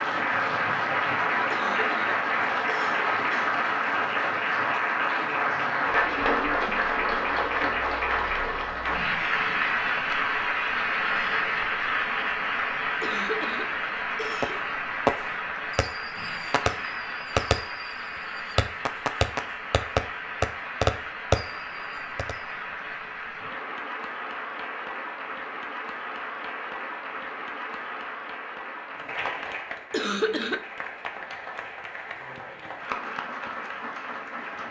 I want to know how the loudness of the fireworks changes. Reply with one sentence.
The loudness of the fireworks goes up.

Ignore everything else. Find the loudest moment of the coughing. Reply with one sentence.
The volume of the coughing peaks at 30 seconds.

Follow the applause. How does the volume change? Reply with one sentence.
The volume of the applause goes down.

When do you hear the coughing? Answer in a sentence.
You can hear the coughing from 1.5 to 3.4 s, from 13.0 to 14.6 s and from 29.9 to 30.6 s.